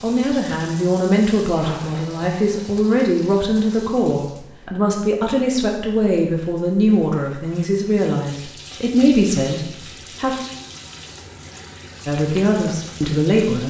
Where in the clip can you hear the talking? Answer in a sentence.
You can hear the talking from 0.0 to 10.3 s and from 12.1 to 13.6 s.